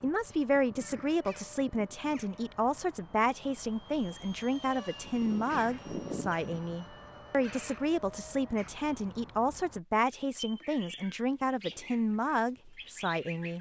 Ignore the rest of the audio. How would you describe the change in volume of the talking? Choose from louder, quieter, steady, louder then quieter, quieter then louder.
steady.